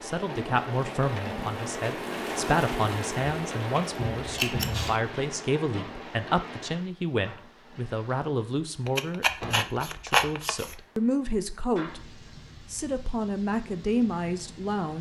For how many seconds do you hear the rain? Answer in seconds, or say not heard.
15 s.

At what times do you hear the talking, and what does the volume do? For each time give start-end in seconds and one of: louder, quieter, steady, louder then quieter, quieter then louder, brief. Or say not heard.
0.0-14.9 steady.